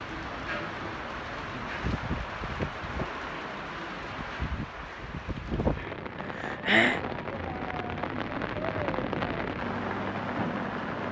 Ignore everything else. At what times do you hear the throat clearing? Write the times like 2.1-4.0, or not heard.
5.8-7.0.